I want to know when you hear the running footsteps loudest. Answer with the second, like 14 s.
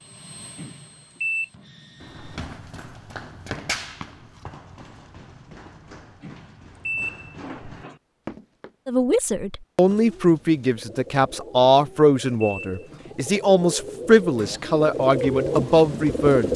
4 s.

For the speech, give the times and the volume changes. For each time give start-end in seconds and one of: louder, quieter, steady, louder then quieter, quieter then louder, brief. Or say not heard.
8.8-16.5 steady.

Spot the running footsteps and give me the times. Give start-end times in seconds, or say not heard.
2.0-8.7.